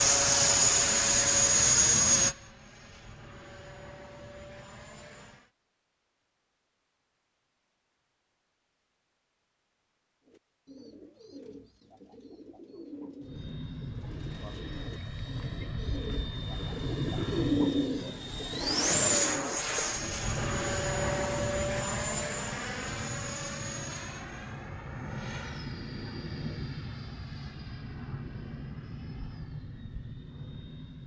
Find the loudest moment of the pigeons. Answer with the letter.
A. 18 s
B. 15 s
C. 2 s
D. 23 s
A.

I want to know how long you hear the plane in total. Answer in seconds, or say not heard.
23 s.